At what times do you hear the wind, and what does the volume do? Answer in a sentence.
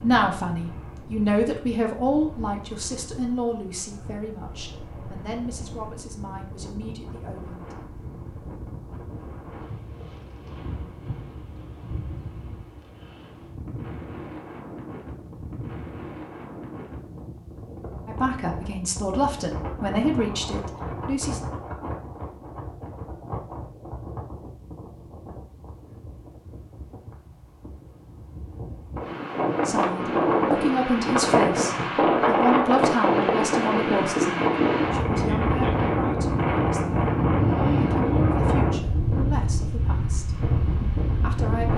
The wind can be heard from 0.0 to 41.7 s, getting louder.